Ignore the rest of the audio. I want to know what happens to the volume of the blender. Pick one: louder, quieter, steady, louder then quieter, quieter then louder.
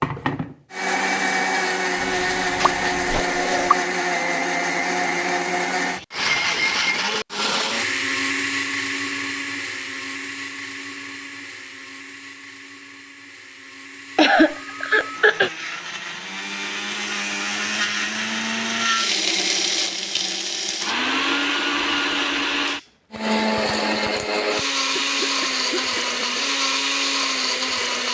quieter then louder.